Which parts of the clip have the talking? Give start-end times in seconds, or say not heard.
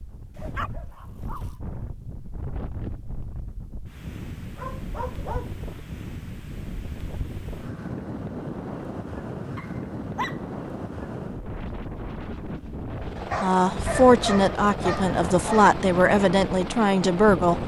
13.4-17.6.